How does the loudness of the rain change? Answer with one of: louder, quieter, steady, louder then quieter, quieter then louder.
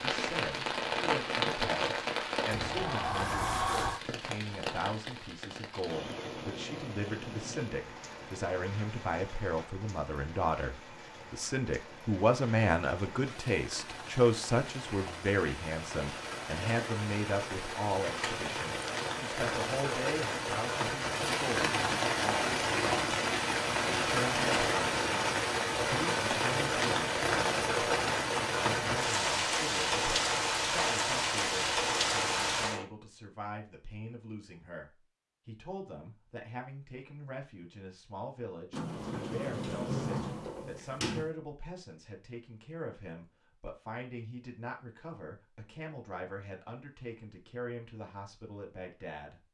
quieter then louder.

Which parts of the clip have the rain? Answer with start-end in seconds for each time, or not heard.
0.0-32.9.